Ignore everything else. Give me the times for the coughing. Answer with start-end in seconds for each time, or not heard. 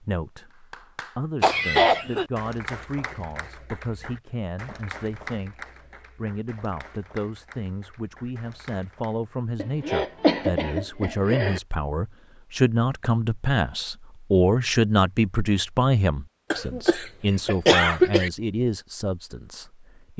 1.4-2.2, 9.6-11.6, 16.5-18.3.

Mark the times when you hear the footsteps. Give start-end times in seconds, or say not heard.
not heard.